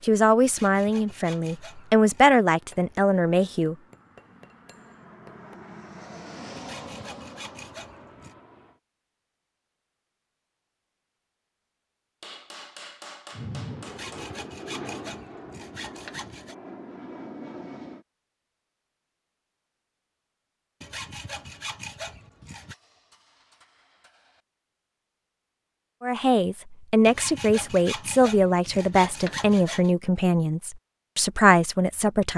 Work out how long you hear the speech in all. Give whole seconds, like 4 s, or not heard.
10 s.